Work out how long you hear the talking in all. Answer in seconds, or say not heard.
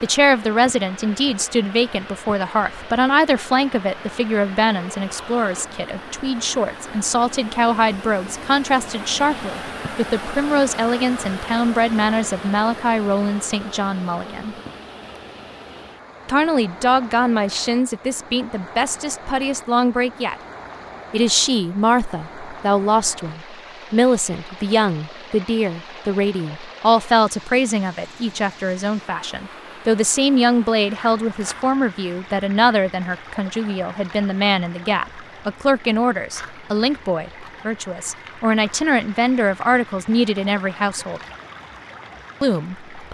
39 s.